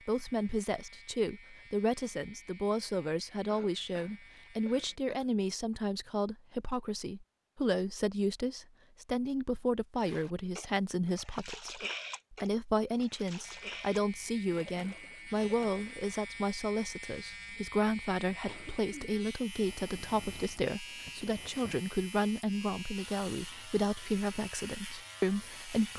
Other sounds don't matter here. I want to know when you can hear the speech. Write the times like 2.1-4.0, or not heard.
0.1-25.9.